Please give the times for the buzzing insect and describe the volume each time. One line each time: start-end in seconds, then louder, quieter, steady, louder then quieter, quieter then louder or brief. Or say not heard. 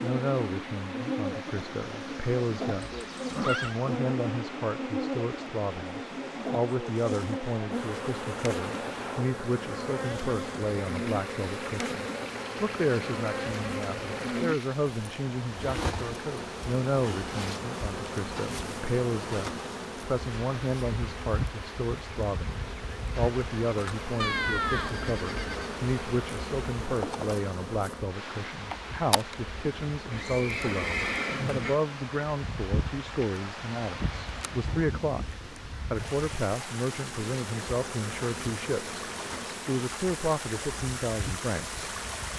0.0-42.3 quieter.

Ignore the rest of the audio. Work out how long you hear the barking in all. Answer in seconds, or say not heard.
not heard.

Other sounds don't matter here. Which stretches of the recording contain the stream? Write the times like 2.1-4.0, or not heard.
0.0-42.3.